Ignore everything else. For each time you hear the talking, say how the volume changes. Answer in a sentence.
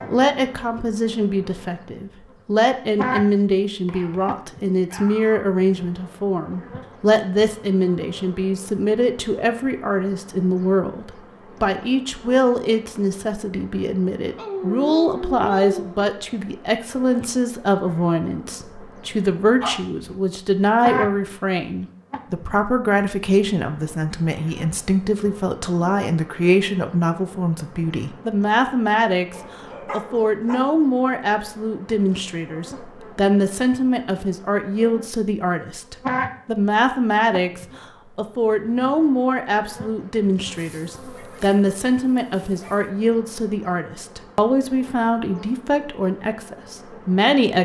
You can hear the talking from 0.1 to 47.6 s, at a steady volume.